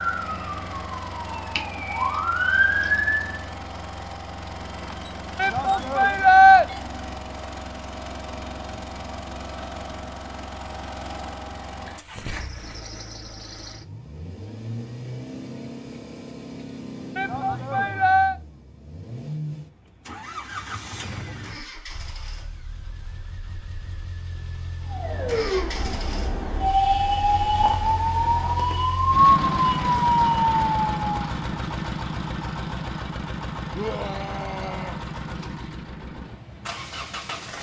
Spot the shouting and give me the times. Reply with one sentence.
The shouting can be heard from 5.3 to 6.7 s, from 17.1 to 18.4 s and from 33.7 to 35.0 s.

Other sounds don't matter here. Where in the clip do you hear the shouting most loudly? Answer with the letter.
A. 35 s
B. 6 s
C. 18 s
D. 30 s
B.